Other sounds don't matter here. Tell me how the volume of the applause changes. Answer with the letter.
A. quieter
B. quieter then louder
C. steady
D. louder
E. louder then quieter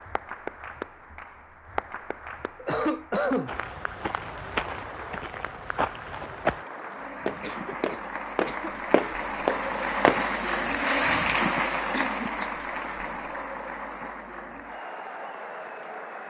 E.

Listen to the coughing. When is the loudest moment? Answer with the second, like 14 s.
3 s.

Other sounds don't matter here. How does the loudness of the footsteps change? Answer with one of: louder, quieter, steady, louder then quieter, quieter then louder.
louder.